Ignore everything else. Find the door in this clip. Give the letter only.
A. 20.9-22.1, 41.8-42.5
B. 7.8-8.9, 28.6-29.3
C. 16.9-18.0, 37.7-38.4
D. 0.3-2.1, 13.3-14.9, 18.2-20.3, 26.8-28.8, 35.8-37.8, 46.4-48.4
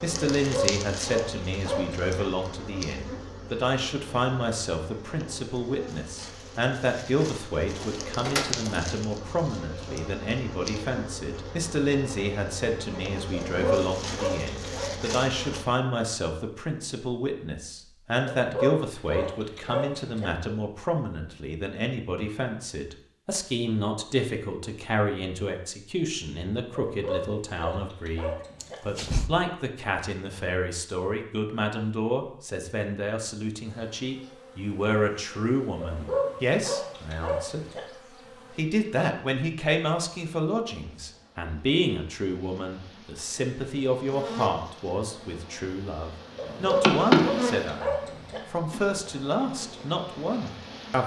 B.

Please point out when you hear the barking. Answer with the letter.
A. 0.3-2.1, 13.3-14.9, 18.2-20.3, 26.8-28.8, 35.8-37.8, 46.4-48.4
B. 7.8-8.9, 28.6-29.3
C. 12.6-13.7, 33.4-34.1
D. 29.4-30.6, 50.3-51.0
A.